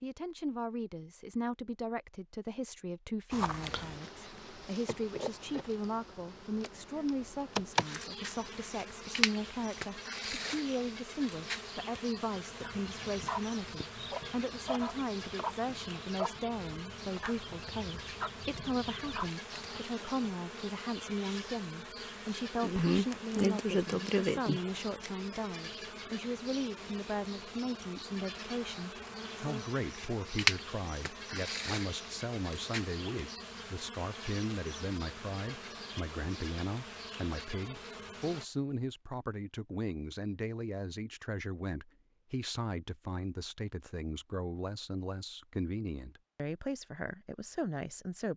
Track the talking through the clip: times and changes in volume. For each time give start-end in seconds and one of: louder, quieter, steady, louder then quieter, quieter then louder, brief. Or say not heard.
0.0-48.3 steady.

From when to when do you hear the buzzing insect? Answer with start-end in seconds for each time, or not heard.
3.3-38.5.